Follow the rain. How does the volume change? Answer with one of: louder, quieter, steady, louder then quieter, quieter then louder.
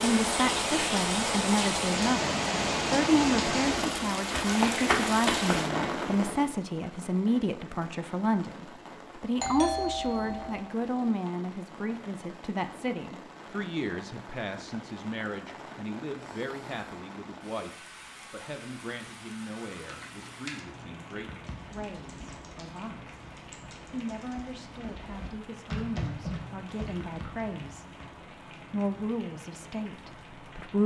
quieter.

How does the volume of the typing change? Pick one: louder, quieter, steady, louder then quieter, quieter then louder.
quieter then louder.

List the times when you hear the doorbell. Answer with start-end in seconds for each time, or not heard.
9.3-10.6.